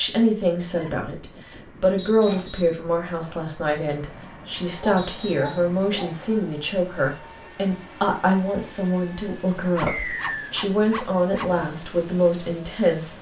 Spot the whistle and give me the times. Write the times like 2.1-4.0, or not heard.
1.9-2.8, 5.0-5.6, 9.8-10.6.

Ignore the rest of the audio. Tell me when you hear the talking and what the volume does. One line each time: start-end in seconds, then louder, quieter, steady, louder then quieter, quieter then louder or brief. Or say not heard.
0.0-13.1 steady.